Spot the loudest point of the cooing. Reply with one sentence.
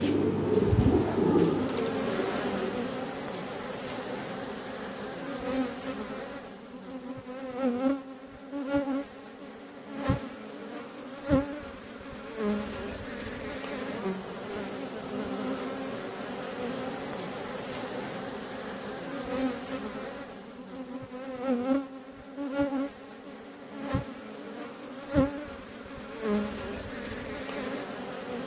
The volume of the cooing peaks at 1 second.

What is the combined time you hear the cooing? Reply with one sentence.
The cooing can be heard for 3 seconds in total.